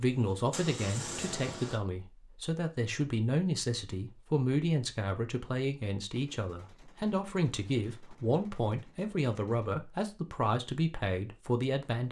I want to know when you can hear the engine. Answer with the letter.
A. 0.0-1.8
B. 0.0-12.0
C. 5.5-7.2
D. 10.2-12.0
A.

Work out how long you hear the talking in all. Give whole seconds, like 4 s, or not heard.
12 s.